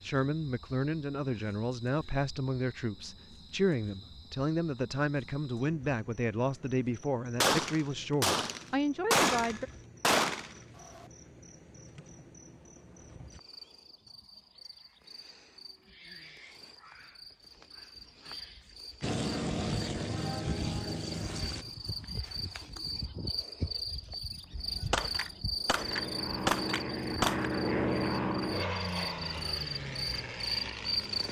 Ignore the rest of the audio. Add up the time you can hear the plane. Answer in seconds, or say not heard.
8 s.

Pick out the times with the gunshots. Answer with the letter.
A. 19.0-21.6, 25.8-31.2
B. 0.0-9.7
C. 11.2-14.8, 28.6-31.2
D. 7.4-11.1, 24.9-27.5
D.